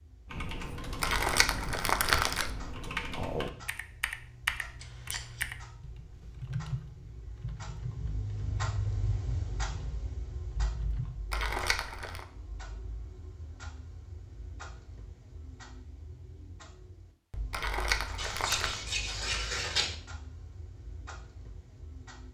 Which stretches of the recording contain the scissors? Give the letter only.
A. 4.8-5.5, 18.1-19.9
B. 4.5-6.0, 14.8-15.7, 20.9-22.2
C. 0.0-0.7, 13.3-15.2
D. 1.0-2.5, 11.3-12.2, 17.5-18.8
A.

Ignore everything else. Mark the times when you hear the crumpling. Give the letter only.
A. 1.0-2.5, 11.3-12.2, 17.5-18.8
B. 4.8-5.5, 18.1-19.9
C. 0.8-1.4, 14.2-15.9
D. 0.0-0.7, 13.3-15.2
A.